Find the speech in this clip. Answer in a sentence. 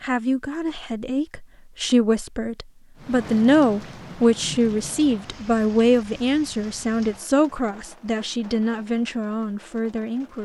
You can hear the speech from 0.0 to 10.4 s.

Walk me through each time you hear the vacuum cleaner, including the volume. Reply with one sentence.
The vacuum cleaner can't be heard in this clip.